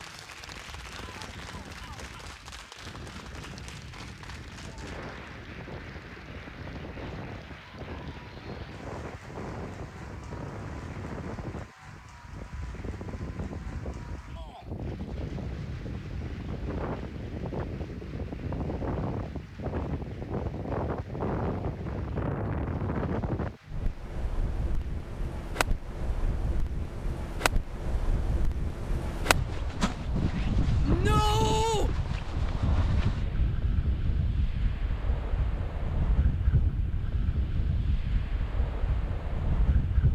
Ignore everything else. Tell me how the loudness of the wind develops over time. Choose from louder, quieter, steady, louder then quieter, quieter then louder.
louder.